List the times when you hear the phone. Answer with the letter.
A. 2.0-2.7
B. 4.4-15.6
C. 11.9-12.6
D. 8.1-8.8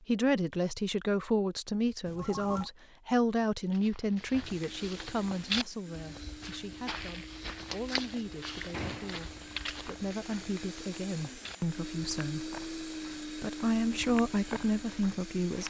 A.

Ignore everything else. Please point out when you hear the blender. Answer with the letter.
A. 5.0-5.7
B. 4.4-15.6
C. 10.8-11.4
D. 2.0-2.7
B.